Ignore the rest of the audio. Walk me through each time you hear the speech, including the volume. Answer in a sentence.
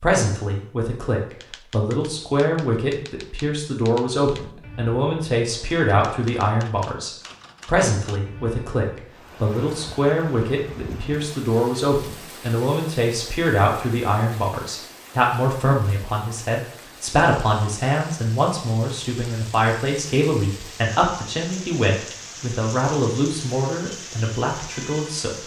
The speech can be heard from 0.0 to 25.4 s, at a steady volume.